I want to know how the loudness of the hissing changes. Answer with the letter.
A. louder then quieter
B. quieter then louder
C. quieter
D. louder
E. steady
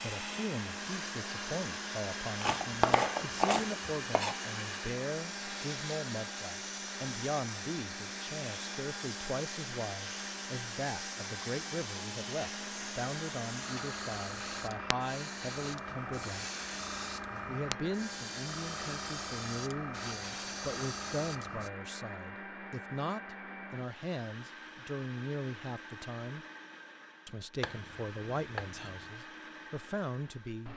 E.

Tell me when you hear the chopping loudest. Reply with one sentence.
The volume of the chopping peaks at 3 seconds.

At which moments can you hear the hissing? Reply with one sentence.
The hissing can be heard from 0.0 to 21.7 s.